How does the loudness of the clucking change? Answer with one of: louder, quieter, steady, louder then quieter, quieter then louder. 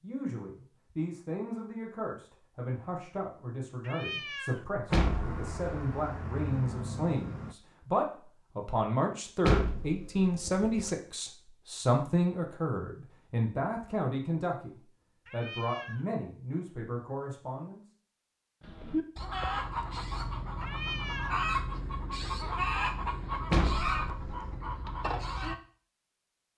steady.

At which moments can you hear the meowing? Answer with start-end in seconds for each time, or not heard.
3.8-4.7, 15.2-16.1, 20.6-21.4.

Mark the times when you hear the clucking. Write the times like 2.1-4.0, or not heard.
18.6-25.6.